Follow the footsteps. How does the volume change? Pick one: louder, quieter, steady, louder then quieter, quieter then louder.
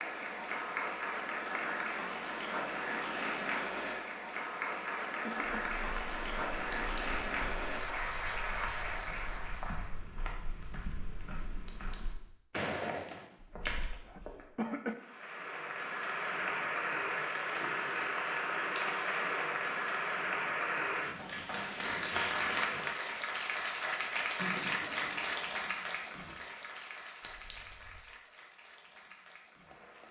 louder.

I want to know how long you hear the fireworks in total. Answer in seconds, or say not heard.
not heard.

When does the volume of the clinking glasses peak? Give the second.
7 s.